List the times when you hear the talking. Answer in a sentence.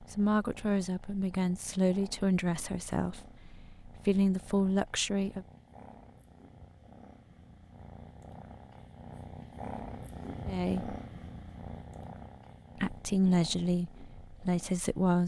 You can hear the talking from 0.0 to 5.5 s, from 10.4 to 10.9 s and from 12.8 to 15.2 s.